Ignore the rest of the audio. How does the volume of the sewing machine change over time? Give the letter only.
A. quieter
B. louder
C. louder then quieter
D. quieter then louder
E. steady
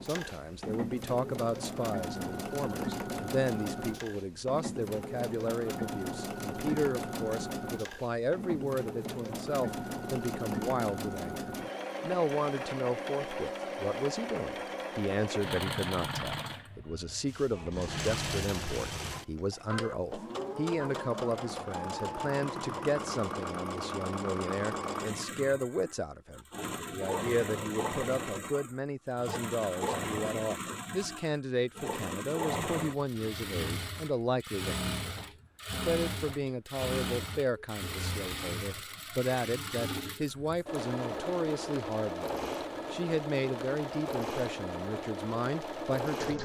E.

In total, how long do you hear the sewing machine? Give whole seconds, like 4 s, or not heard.
46 s.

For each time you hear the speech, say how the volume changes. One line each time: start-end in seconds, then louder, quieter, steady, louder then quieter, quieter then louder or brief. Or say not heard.
0.0-46.3 steady.